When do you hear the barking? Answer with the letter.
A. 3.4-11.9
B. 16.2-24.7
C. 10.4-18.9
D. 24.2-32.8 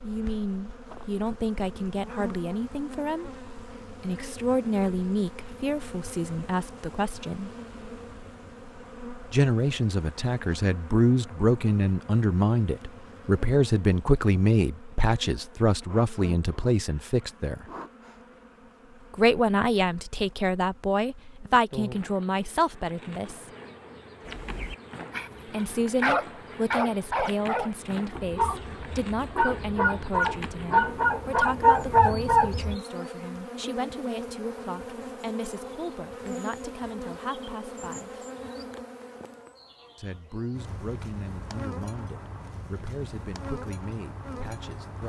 D.